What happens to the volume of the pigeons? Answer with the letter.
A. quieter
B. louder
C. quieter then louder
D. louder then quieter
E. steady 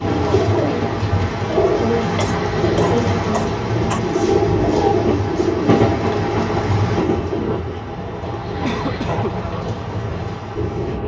A.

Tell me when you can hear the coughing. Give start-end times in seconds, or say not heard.
2.1-4.0, 8.6-9.4.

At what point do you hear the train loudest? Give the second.
6 s.